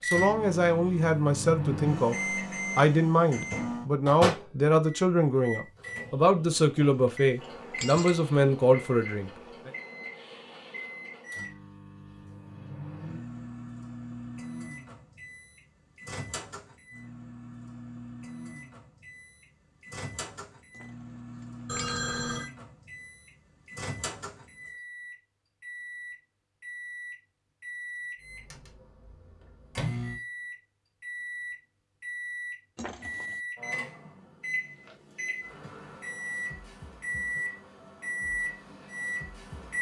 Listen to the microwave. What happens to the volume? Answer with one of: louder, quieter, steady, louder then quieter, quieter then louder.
quieter then louder.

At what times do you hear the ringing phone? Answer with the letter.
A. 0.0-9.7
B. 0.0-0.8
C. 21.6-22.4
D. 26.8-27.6
C.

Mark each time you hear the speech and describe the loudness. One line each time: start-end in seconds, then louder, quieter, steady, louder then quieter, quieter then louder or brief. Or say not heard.
0.0-9.7 steady.